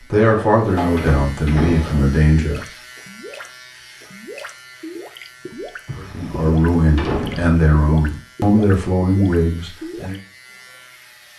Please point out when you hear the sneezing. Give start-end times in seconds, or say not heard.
not heard.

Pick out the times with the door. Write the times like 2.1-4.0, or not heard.
0.1-2.1, 5.8-7.5.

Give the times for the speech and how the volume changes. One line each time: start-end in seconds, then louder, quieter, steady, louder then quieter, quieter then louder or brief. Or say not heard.
0.1-2.6 brief
6.0-10.2 steady.